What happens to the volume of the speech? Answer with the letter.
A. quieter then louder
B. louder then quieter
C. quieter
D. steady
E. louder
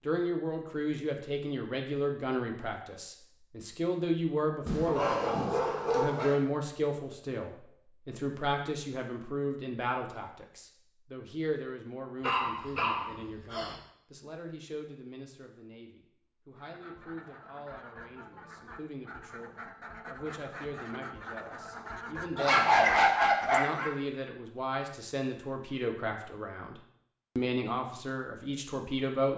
A.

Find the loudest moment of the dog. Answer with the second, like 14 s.
23 s.